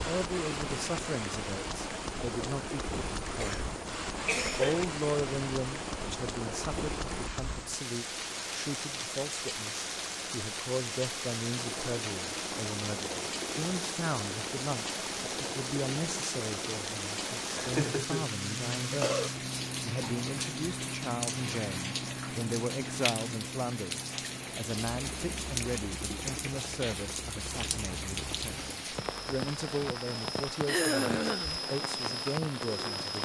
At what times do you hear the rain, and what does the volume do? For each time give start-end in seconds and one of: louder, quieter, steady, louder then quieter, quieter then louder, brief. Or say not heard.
0.0-33.2 steady.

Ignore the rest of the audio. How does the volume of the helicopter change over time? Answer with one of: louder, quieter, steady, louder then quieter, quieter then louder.
steady.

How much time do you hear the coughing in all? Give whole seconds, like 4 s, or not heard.
4 s.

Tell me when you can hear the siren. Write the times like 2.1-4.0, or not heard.
not heard.